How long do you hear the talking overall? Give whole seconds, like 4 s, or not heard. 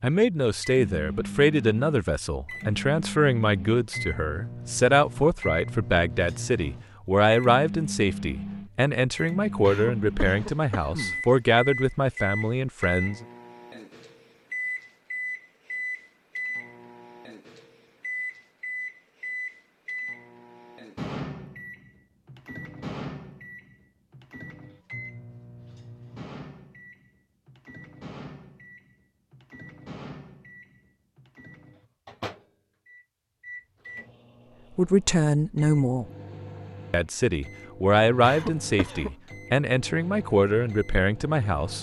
19 s.